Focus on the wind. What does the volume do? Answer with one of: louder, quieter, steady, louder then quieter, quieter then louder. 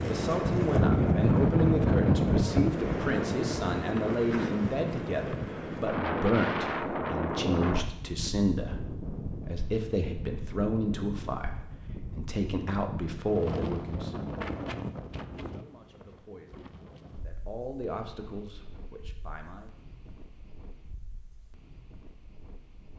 quieter.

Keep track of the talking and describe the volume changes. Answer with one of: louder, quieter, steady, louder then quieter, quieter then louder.
quieter.